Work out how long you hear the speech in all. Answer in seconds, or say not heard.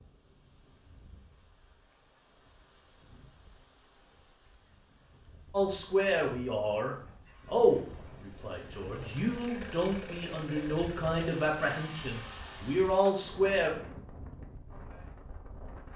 8 s.